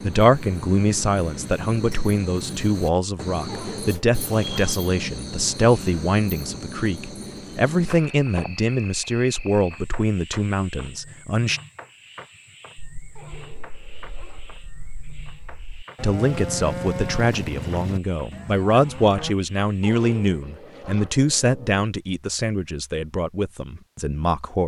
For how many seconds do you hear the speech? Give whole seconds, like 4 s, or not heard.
20 s.